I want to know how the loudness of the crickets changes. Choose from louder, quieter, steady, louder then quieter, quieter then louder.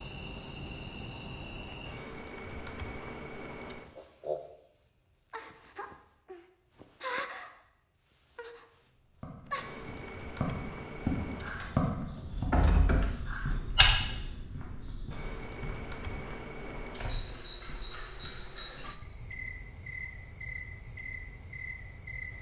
steady.